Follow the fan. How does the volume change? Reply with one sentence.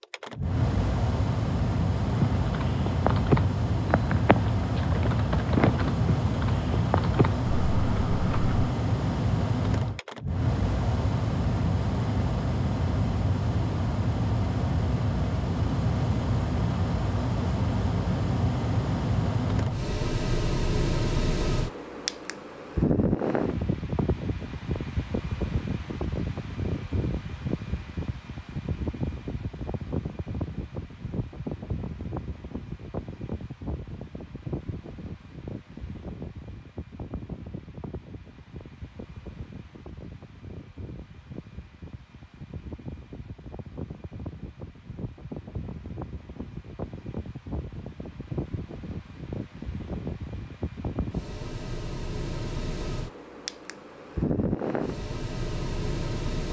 The loudness of the fan goes down, then up.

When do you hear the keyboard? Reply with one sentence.
The keyboard can be heard from 2.0 to 8.7 s.